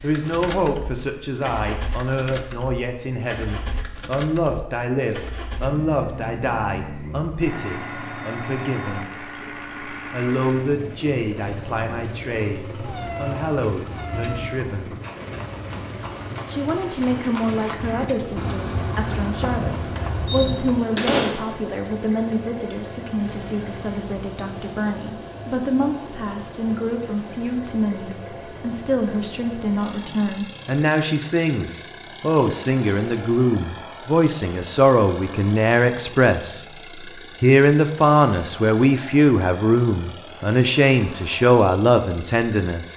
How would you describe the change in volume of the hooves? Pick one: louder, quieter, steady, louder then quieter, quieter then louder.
louder.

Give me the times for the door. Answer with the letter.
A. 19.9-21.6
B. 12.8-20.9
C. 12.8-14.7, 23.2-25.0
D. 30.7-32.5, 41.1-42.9
A.